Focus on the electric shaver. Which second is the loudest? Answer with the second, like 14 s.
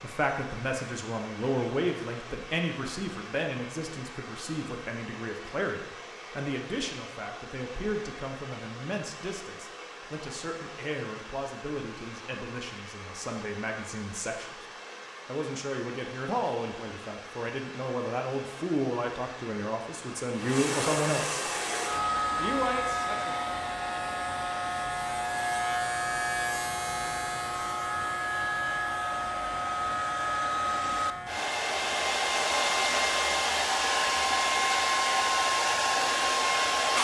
26 s.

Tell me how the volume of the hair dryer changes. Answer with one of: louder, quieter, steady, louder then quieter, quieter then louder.
louder.